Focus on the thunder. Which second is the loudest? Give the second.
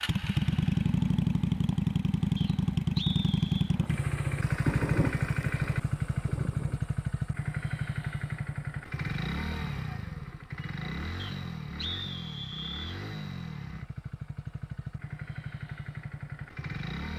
5 s.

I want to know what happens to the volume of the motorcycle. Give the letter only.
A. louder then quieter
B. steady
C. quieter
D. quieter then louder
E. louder
C.